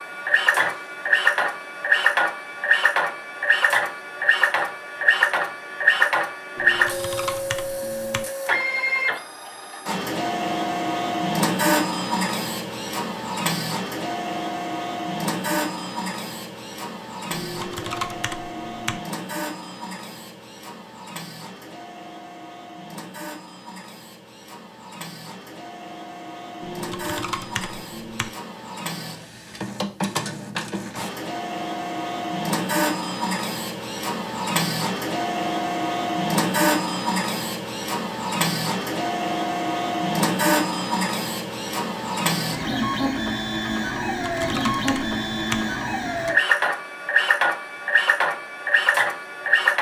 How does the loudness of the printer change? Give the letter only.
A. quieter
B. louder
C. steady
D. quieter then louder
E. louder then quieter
D.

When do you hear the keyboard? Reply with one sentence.
You can hear the keyboard from 6.5 to 8.2 s, from 17.3 to 19.0 s, from 26.6 to 28.3 s and from 44.0 to 45.6 s.